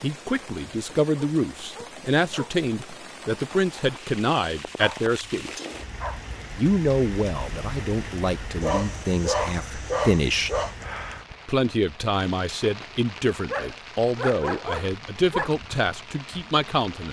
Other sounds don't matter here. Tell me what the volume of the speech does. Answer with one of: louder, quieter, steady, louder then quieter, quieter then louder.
steady.